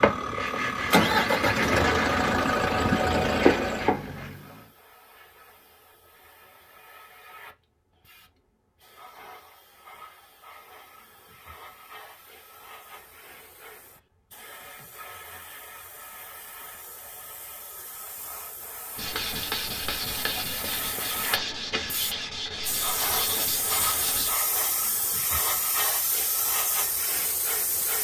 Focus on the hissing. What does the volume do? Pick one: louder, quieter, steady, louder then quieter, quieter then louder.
louder.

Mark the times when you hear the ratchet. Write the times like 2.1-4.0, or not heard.
not heard.